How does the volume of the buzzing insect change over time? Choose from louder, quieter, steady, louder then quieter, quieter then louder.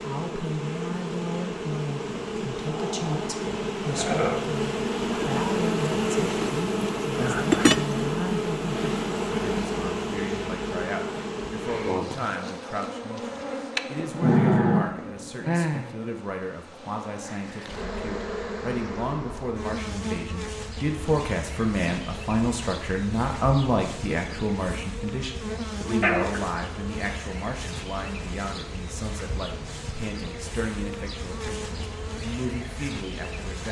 quieter.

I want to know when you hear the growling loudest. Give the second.
14 s.